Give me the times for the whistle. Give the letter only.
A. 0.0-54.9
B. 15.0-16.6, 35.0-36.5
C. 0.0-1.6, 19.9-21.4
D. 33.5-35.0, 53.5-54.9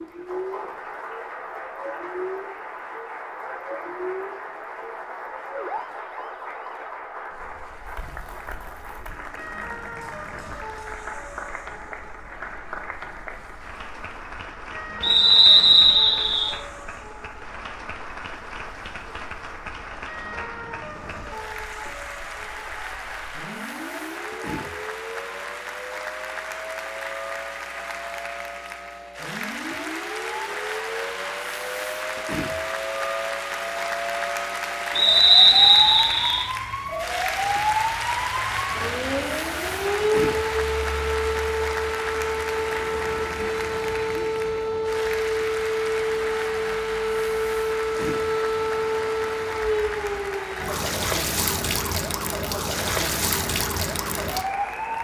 B.